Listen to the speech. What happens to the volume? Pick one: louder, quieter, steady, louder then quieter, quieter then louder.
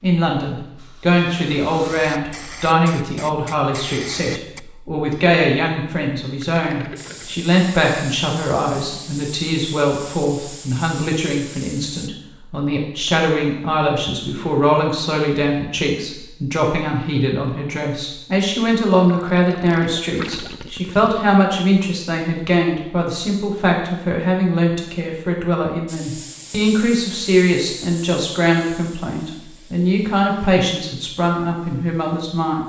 steady.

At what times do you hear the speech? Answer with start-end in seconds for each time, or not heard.
0.0-32.6.